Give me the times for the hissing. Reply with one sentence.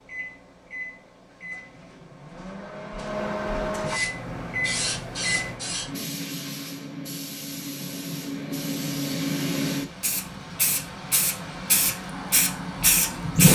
The hissing can be heard from 3.9 to 13.5 s.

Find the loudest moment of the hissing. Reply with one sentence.
The volume of the hissing peaks at 13 seconds.